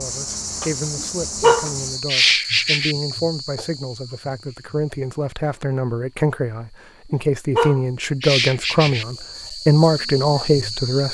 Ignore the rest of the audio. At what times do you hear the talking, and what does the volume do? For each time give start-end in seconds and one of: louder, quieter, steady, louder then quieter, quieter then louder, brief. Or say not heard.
0.0-11.0 louder.